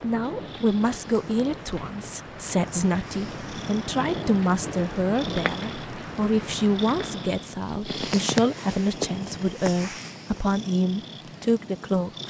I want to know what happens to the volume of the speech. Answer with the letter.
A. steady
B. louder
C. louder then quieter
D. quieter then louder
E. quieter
A.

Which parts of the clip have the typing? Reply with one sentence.
You can't hear the typing here.